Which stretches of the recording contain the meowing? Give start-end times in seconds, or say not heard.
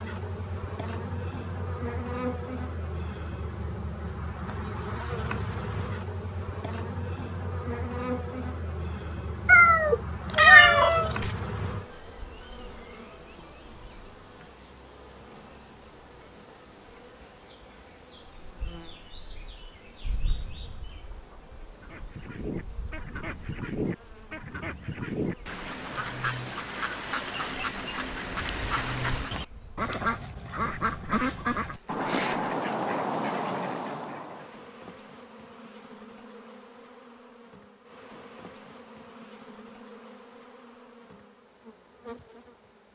9.4-11.3.